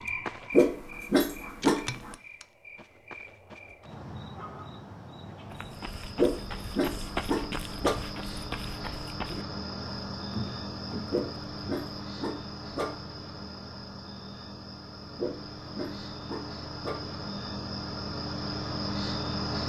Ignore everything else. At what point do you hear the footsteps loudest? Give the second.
7 s.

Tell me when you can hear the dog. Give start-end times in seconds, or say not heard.
0.5-2.1, 6.2-8.0, 11.1-13.0, 15.2-17.1.